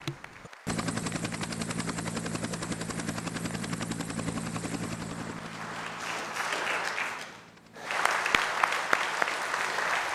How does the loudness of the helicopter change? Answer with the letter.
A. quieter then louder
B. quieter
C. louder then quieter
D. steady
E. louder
B.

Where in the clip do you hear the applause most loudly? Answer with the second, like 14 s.
9 s.